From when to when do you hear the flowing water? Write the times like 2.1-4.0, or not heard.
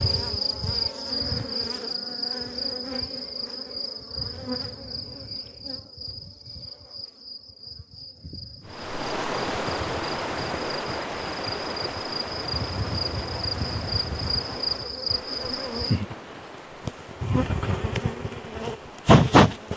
8.7-19.7.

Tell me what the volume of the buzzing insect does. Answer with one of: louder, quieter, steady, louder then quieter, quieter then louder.
quieter then louder.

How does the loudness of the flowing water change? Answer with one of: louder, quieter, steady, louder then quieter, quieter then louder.
quieter.